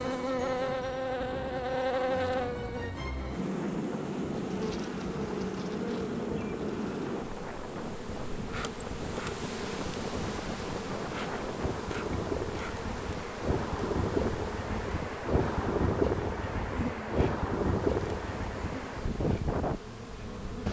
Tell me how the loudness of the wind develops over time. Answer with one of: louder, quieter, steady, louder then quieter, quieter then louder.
louder.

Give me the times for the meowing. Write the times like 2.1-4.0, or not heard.
not heard.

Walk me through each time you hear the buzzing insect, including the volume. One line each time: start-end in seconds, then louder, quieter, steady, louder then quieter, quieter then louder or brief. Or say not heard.
0.0-20.6 quieter.